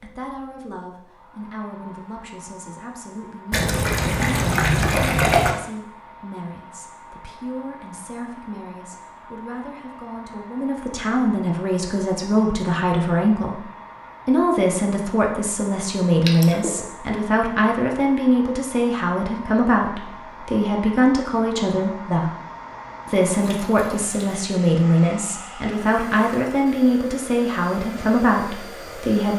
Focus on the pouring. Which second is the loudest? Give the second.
5 s.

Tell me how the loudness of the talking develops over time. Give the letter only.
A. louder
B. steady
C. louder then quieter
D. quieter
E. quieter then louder
A.